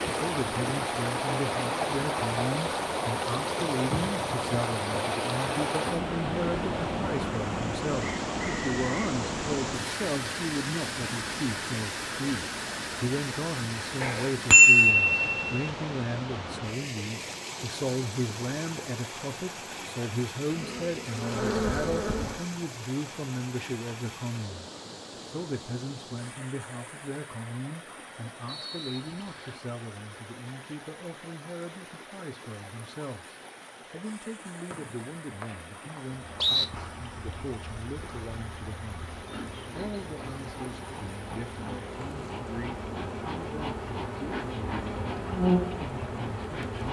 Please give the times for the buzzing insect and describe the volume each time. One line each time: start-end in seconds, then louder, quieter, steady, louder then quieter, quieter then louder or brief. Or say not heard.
20.5-22.4 brief
36.1-46.8 louder.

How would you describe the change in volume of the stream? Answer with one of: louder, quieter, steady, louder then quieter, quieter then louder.
quieter.